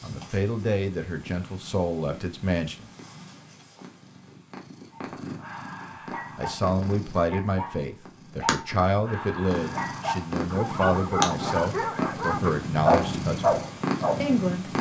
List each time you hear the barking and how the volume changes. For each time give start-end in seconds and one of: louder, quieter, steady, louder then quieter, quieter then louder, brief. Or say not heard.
4.9-14.3 louder.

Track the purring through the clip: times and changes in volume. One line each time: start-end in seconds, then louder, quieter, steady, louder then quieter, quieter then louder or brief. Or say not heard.
0.0-14.7 louder.